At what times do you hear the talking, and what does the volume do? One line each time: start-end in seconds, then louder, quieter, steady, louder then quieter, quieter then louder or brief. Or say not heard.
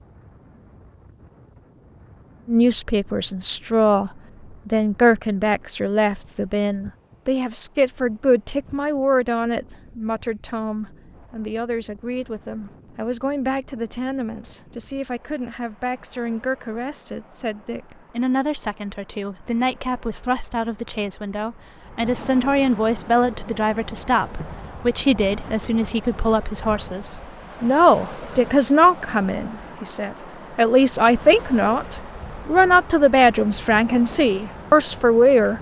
2.5-35.5 quieter then louder.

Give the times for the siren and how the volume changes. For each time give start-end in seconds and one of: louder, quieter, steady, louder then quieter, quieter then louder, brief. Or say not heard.
not heard.